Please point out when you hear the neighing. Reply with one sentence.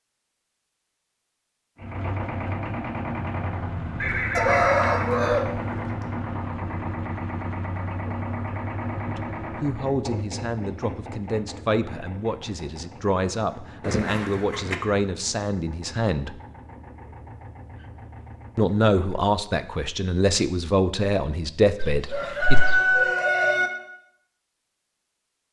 You can hear the neighing from 4.0 to 5.8 s, from 13.8 to 14.8 s and from 21.8 to 22.9 s.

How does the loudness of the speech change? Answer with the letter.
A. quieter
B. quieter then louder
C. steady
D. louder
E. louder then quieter
D.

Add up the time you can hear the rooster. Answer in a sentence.
You can hear the rooster for 3 seconds altogether.